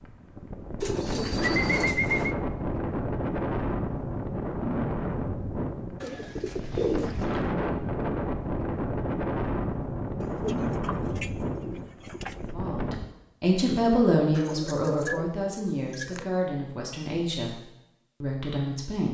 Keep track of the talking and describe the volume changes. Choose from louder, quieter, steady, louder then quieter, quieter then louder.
quieter.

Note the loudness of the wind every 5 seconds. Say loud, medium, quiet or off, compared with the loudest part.
loud, loud, loud, off.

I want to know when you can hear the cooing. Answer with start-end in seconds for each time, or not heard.
0.8-2.4, 6.0-7.5, 10.2-12.5, 14.3-16.3.